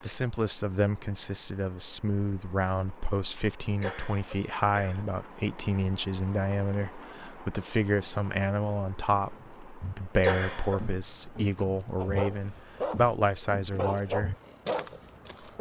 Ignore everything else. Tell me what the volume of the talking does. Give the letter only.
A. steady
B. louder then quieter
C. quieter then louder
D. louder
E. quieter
A.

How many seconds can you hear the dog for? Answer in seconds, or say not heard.
3 s.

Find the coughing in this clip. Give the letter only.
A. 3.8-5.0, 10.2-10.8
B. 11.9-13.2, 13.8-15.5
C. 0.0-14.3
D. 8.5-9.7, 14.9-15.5
A.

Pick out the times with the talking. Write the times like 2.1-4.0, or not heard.
0.0-14.3.